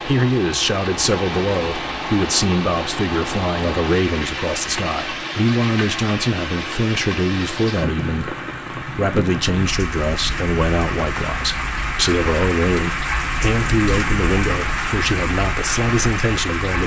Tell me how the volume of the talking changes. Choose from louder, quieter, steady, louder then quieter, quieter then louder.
steady.